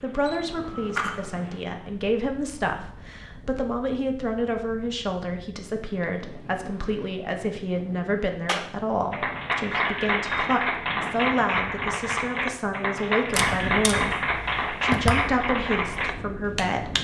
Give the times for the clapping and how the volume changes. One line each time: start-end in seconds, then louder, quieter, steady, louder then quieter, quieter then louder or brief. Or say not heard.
8.4-16.9 steady.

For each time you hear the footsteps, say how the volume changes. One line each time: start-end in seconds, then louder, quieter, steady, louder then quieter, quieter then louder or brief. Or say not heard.
not heard.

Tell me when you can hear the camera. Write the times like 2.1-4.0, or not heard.
0.2-1.4, 13.3-15.3.